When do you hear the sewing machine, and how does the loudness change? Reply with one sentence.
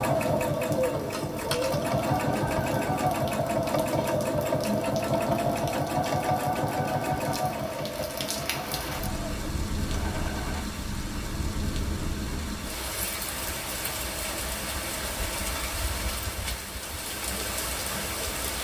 The sewing machine can be heard from 0.0 to 10.7 s, getting quieter.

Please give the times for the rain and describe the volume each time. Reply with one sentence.
You can hear the rain from 0.0 to 18.5 s, getting louder.